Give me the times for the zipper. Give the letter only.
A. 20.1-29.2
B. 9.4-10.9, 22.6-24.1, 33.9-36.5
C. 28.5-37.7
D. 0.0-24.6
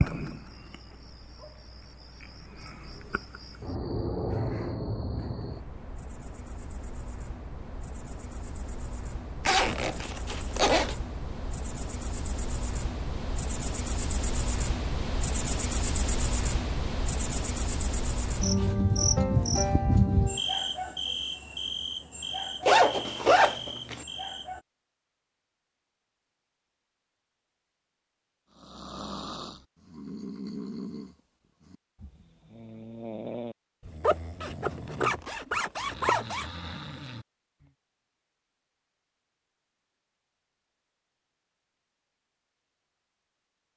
B.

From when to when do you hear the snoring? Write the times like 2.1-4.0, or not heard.
28.5-37.7.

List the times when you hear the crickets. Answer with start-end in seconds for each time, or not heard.
0.0-24.6.